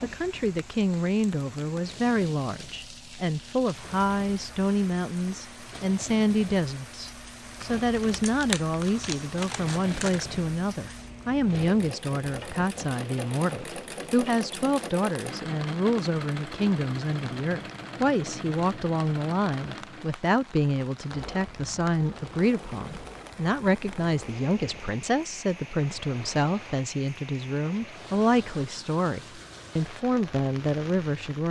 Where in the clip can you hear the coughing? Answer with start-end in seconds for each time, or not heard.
not heard.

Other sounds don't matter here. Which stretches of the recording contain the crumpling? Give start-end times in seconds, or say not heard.
7.5-10.2.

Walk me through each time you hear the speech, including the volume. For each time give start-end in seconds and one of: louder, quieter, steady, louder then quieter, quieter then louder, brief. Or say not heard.
0.0-31.4 steady.